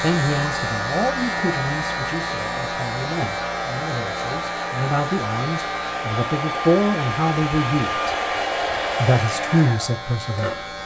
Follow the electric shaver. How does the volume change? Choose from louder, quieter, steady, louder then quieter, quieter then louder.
quieter.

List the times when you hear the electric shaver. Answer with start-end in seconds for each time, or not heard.
0.0-10.8.